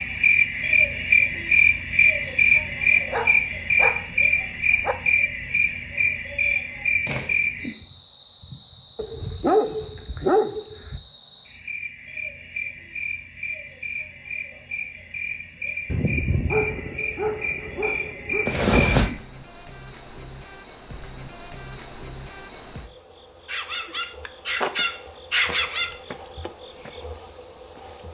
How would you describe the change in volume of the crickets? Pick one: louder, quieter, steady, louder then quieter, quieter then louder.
quieter then louder.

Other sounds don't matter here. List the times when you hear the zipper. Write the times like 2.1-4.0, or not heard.
18.4-19.1.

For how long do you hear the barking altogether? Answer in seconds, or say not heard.
9 s.